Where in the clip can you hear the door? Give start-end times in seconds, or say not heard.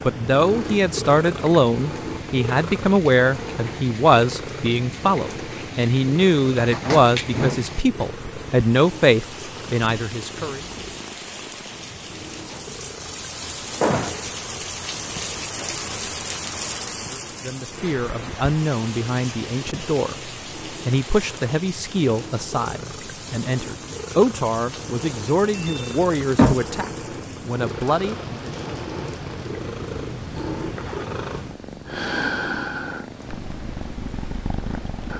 6.5-7.8, 13.8-14.3, 25.5-26.8.